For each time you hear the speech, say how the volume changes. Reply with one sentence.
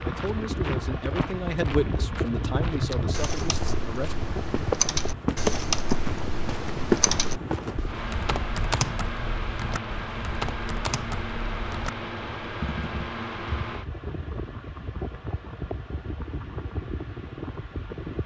The speech can be heard from 0.0 to 4.2 s, getting louder then quieter.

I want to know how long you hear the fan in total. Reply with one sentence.
The fan can be heard for 18 seconds in total.